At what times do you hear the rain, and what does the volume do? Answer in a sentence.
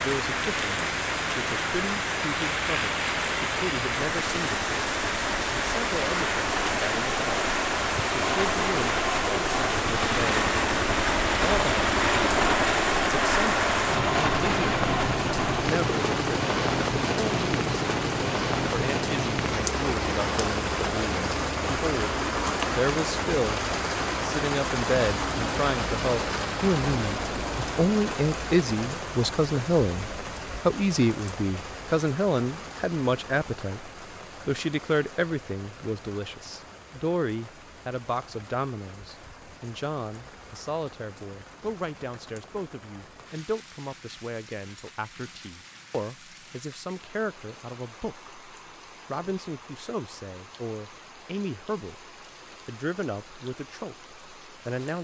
You can hear the rain from 0.0 to 54.9 s, getting quieter.